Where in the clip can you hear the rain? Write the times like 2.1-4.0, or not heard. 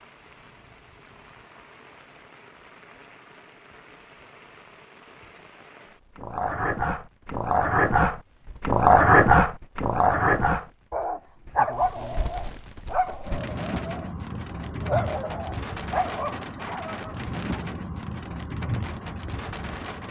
0.0-20.0.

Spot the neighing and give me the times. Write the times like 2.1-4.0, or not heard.
not heard.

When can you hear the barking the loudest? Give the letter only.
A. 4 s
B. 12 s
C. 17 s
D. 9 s
D.